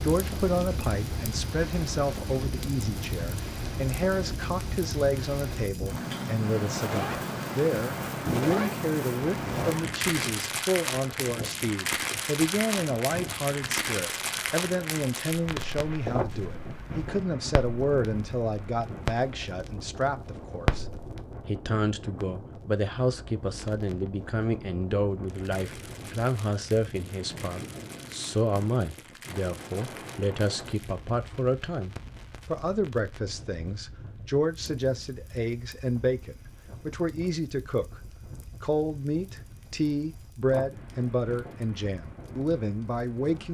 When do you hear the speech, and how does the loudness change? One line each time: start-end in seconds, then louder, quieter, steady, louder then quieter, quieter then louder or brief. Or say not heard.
0.0-20.9 steady
21.4-43.4 steady.